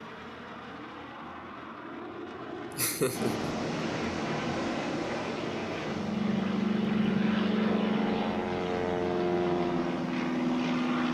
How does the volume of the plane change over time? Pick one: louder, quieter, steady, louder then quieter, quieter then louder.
louder.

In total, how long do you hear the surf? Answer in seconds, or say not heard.
8 s.